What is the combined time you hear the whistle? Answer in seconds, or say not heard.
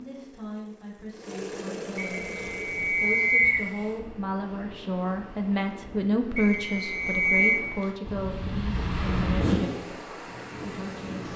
3 s.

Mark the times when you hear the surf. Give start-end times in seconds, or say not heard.
2.2-11.3.